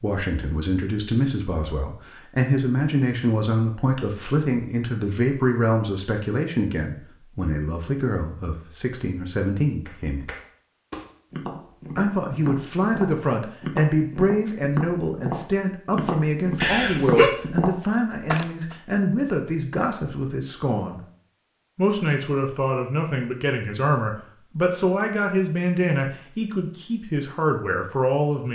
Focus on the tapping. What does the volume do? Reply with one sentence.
The loudness of the tapping goes up.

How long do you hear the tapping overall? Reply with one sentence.
The tapping can be heard for 9 seconds in total.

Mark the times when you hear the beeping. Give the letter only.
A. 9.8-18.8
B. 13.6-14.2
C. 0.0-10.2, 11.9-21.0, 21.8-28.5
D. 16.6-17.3
D.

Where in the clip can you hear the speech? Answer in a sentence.
The speech can be heard from 0.0 to 10.2 s, from 11.9 to 21.0 s and from 21.8 to 28.5 s.